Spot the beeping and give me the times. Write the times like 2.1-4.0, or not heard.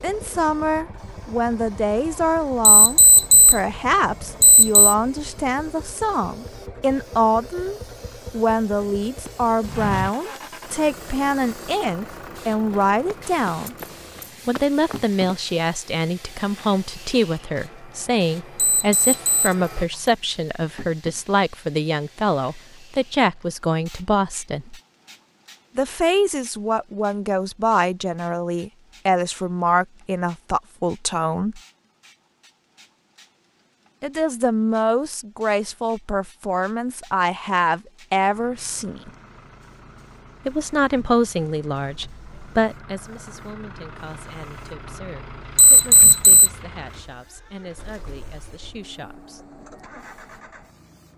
2.6-3.6, 4.4-5.0, 18.6-19.6, 45.5-46.5.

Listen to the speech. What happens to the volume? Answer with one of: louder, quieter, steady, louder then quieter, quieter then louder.
quieter.